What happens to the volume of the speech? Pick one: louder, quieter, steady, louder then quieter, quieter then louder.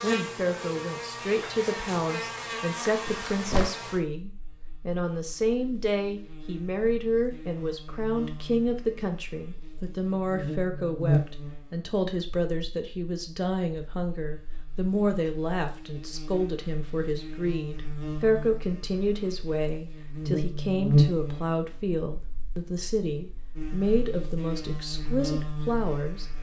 steady.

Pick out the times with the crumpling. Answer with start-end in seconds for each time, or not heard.
3.0-3.7.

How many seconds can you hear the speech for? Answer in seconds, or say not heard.
26 s.